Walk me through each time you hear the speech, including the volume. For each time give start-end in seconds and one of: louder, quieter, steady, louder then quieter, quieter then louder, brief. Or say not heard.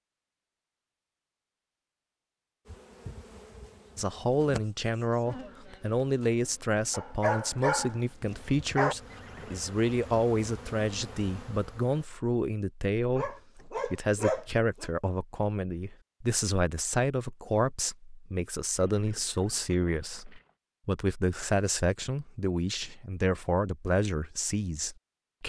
4.0-25.4 steady.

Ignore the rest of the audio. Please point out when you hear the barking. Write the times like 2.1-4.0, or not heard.
6.9-8.9, 13.2-14.9.